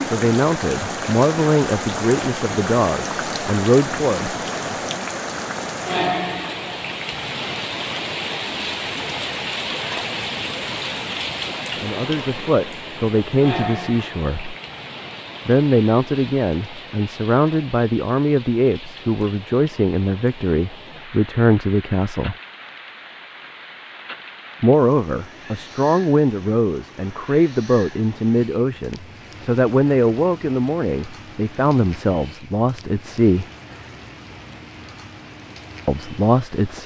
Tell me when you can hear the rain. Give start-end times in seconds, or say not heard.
0.0-36.8.